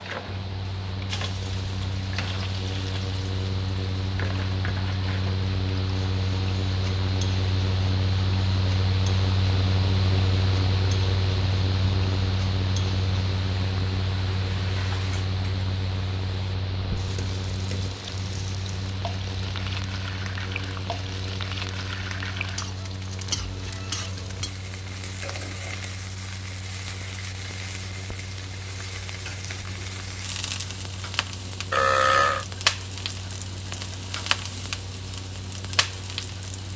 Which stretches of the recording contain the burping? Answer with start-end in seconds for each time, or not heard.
31.7-32.5.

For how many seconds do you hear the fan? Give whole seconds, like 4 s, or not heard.
37 s.